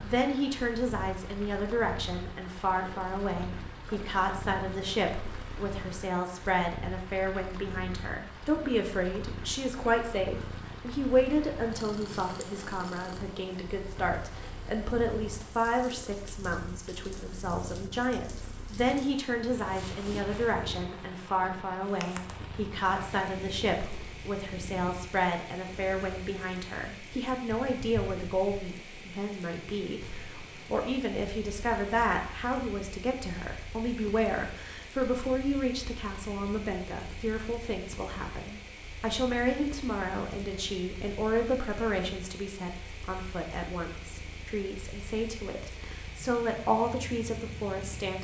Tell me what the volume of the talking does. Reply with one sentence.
The volume of the talking stays about the same.